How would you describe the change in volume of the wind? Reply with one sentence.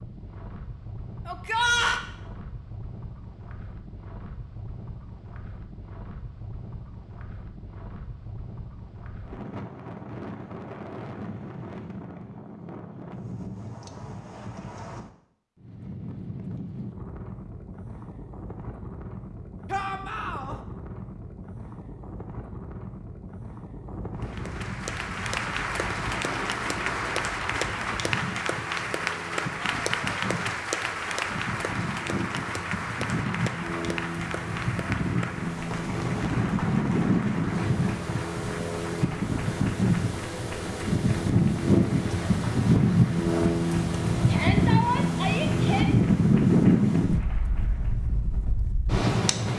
The volume of the wind goes up.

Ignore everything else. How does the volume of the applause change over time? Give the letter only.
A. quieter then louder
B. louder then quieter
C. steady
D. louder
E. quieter
E.